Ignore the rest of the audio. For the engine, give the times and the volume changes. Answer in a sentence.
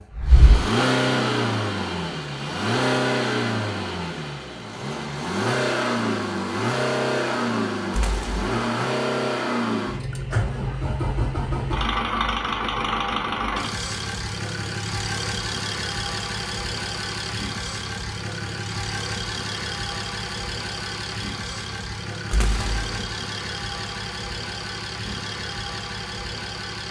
The engine can be heard from 0.0 to 26.8 s, getting quieter.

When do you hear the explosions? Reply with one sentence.
The explosions can be heard from 7.9 to 8.5 s and from 22.3 to 23.1 s.